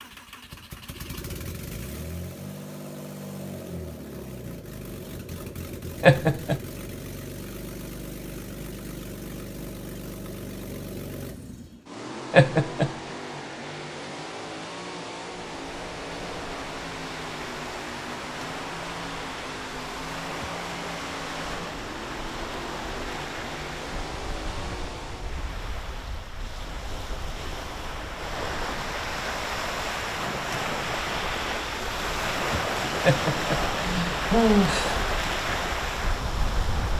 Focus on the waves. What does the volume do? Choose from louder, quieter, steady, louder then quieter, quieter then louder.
louder.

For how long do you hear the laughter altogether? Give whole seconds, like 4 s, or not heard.
3 s.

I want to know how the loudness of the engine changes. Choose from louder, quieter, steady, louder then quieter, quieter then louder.
steady.